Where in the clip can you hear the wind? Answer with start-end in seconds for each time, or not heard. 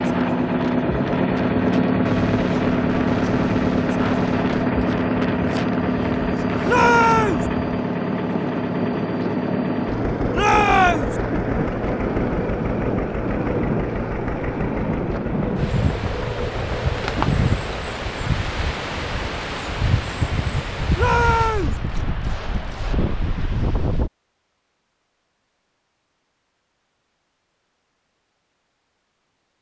0.0-24.1.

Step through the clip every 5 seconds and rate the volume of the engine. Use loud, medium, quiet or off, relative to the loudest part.
loud, loud, medium, medium, off, off.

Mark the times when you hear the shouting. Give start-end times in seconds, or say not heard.
6.7-7.5, 10.3-11.2, 20.9-21.8.